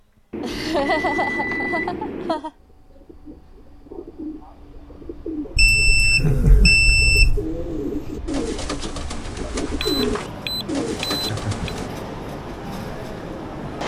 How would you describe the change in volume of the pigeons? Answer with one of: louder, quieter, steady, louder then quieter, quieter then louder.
louder.